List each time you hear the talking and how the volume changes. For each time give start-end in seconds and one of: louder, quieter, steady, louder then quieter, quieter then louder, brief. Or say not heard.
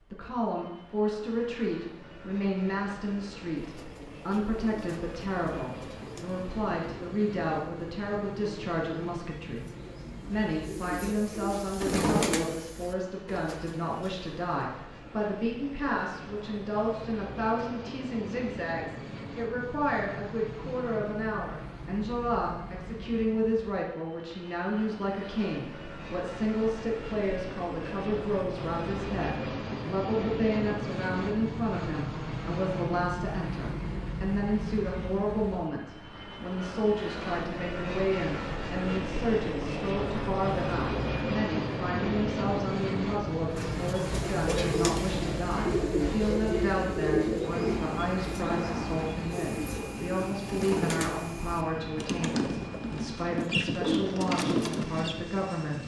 0.1-55.8 steady.